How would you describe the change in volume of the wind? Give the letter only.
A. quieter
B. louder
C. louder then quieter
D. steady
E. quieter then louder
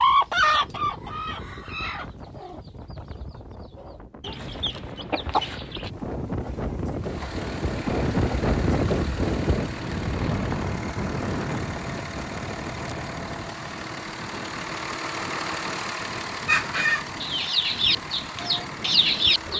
C.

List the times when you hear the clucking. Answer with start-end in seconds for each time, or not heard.
0.0-3.0, 3.8-5.9, 16.4-19.5.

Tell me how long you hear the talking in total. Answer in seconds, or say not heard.
not heard.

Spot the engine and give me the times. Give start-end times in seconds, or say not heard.
7.0-19.5.